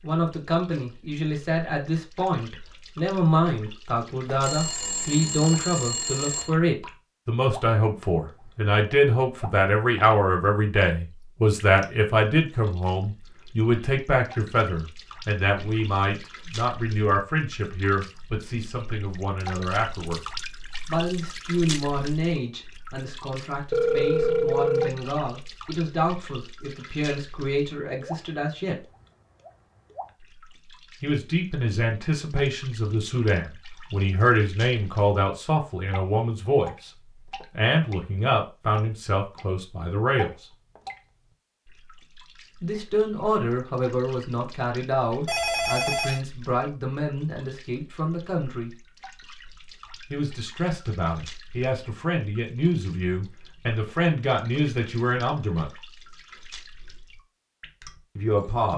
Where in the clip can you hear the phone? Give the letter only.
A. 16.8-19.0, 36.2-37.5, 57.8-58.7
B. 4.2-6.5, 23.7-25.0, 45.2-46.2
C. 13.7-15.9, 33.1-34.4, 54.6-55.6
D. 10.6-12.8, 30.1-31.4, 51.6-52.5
B.